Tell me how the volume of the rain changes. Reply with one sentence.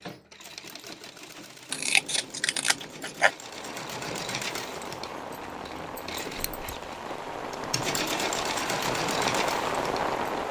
The volume of the rain goes up.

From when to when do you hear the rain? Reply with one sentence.
You can hear the rain from 3.2 to 10.4 s.